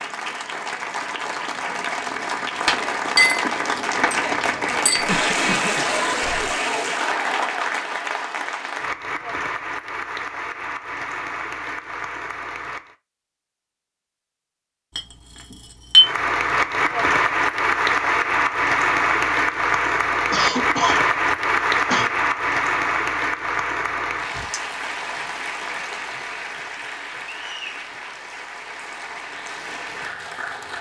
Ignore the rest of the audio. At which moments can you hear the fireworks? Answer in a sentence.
The fireworks can't be heard in this clip.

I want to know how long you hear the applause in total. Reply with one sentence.
You can hear the applause for 28 seconds altogether.